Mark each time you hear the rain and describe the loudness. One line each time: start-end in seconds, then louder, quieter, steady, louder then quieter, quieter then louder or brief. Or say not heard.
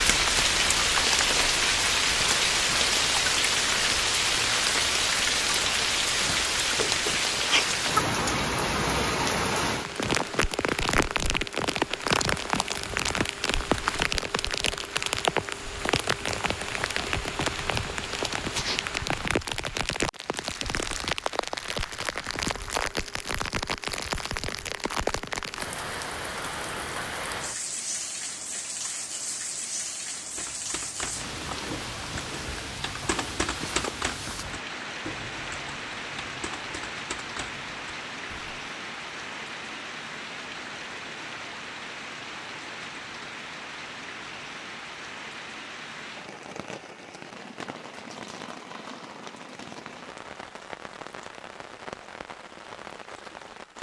0.0-53.7 quieter.